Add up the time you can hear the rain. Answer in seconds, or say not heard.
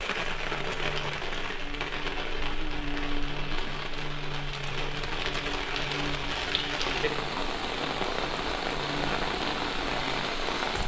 11 s.